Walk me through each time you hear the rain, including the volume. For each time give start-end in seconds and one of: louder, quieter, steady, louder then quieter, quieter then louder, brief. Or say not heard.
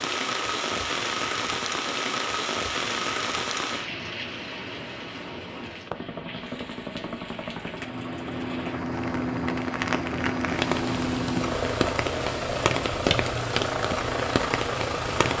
0.0-15.3 quieter then louder.